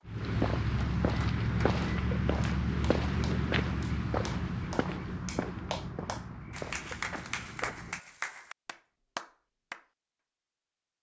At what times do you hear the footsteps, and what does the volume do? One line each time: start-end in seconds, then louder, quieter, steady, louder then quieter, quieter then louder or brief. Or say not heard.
0.1-8.0 quieter.